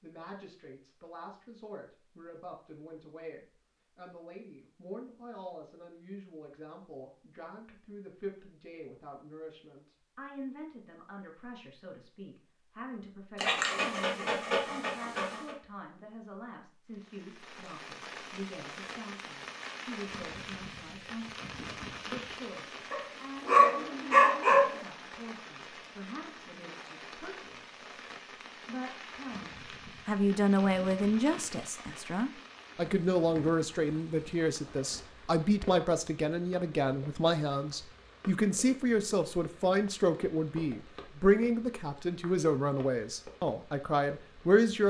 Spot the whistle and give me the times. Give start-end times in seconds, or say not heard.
not heard.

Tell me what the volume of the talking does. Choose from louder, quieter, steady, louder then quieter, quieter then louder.
louder.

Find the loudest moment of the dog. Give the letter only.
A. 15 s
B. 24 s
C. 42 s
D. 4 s
B.